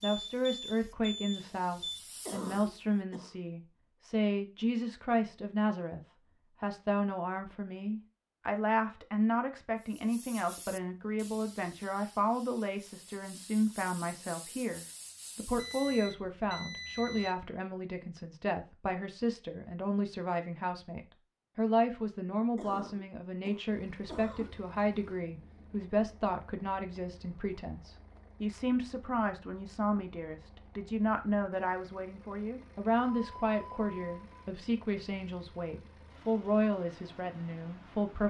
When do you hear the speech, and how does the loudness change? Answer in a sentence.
You can hear the speech from 0.0 to 38.2 s, at a steady volume.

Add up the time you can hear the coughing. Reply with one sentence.
The coughing can be heard for 3 seconds in total.